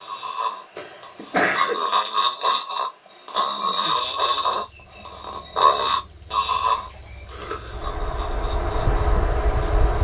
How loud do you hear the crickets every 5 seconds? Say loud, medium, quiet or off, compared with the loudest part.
medium, loud.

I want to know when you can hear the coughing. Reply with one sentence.
You can hear the coughing from 0.8 to 1.8 s and from 7.3 to 7.8 s.